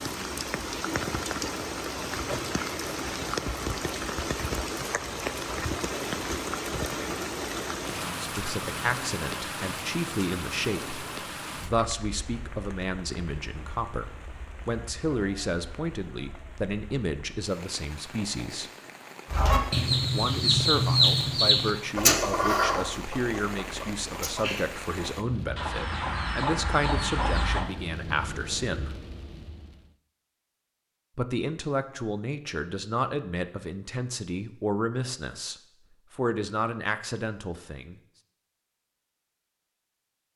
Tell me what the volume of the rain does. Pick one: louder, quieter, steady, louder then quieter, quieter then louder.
quieter then louder.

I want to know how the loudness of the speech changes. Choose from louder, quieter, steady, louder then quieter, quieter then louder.
steady.